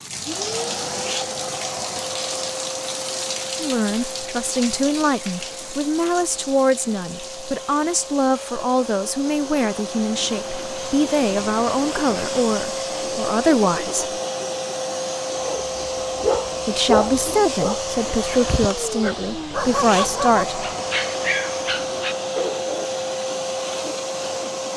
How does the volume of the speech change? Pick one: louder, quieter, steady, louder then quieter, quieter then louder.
steady.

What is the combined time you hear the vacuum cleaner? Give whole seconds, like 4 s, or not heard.
25 s.